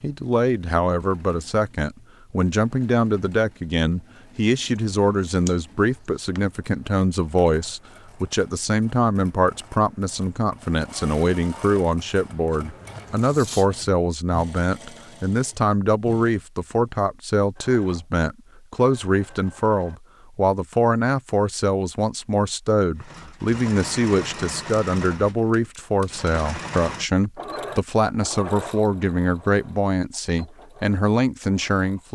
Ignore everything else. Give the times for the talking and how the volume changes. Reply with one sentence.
The talking can be heard from 0.0 to 32.0 s, at a steady volume.